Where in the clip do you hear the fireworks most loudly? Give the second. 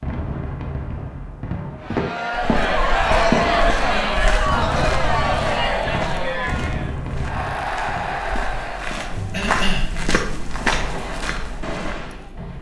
3 s.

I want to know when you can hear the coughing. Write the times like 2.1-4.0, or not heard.
9.3-9.8.